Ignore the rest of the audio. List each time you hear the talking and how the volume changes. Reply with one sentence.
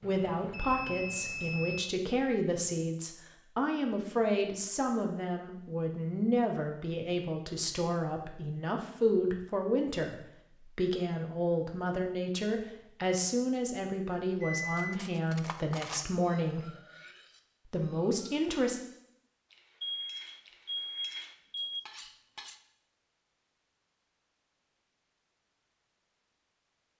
The talking can be heard from 0.0 to 16.7 s, at a steady volume; and briefly from 17.6 to 18.8 s.